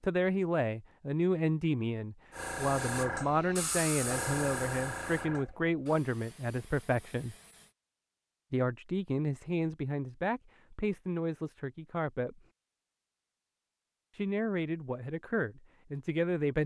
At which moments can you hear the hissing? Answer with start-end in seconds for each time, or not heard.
2.3-7.8.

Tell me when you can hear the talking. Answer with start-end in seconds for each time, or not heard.
0.0-7.3, 8.5-12.4, 14.1-16.6.